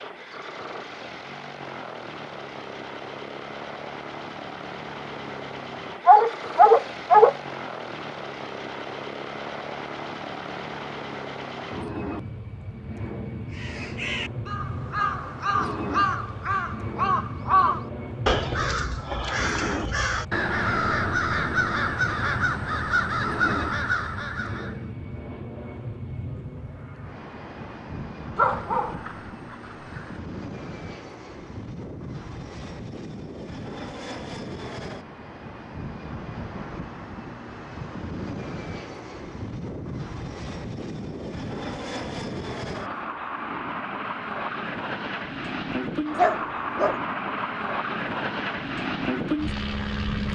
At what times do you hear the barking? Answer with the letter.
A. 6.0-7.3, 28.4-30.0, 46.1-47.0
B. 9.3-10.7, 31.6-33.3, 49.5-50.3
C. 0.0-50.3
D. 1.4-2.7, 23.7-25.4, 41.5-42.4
A.